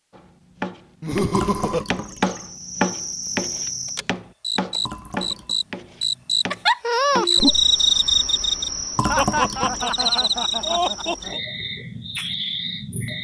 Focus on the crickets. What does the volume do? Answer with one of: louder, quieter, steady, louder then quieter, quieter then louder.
louder then quieter.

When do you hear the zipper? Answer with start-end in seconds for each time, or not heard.
not heard.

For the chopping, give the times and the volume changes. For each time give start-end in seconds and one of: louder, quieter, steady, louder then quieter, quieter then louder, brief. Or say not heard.
0.1-7.2 louder then quieter.